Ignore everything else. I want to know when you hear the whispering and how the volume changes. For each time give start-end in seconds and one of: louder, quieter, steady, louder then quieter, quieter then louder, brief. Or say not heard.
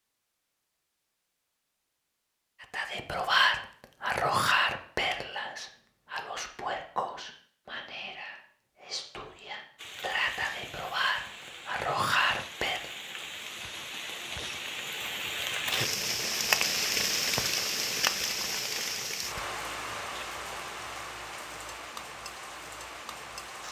2.6-12.8 quieter then louder.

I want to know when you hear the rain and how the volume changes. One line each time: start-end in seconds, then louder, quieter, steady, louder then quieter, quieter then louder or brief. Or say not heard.
9.8-23.6 louder then quieter.